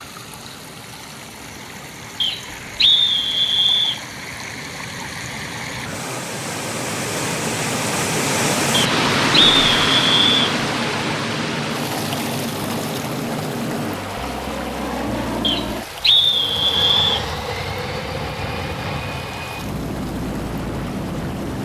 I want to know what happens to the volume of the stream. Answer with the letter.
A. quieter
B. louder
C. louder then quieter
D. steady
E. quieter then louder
C.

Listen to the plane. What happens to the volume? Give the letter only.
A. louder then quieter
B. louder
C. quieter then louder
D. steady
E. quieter
B.